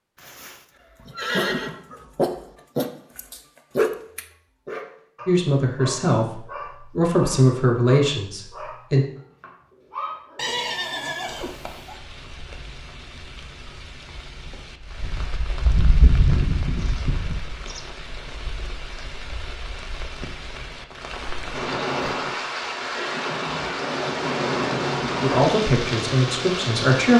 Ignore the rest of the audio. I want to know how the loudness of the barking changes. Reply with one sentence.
The loudness of the barking goes down.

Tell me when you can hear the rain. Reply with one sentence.
The rain can be heard from 11.3 to 27.1 s.